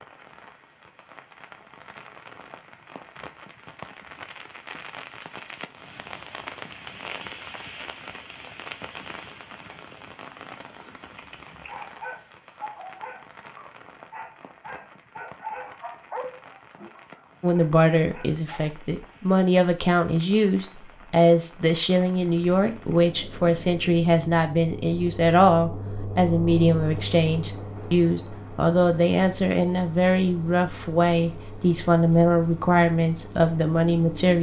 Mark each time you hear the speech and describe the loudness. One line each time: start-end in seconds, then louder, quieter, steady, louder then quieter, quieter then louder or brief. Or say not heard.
17.4-34.3 steady.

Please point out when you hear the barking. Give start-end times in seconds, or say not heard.
11.0-18.6.